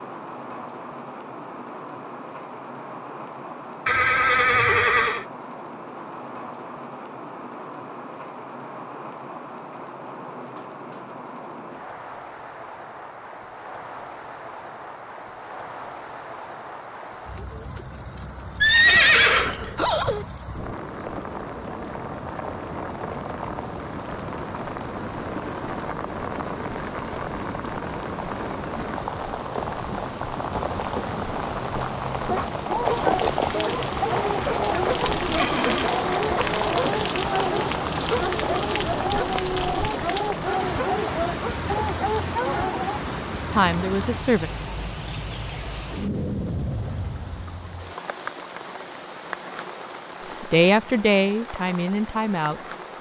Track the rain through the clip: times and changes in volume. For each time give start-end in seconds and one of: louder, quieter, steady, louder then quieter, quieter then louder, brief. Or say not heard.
0.0-52.9 louder then quieter.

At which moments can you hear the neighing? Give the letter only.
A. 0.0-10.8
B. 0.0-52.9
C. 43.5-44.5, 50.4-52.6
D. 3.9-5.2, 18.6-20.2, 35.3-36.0
D.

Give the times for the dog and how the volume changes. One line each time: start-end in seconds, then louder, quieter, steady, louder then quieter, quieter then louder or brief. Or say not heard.
32.2-43.0 steady.